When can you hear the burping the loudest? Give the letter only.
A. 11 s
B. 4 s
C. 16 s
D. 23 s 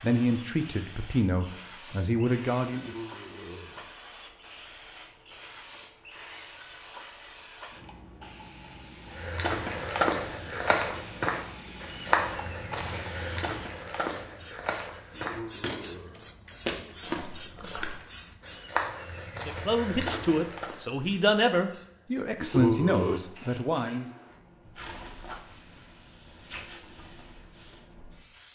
D.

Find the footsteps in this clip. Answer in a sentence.
The footsteps can be heard from 9.2 to 20.8 s.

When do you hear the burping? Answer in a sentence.
The burping can be heard from 2.7 to 4.0 s, from 15.2 to 16.4 s and from 22.4 to 23.2 s.